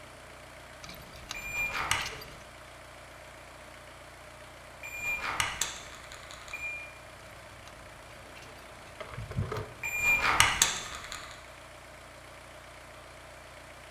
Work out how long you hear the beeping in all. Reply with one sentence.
The beeping can be heard for 4 seconds in total.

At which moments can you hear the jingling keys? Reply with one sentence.
You can hear the jingling keys from 0.8 to 2.5 s and from 7.2 to 9.7 s.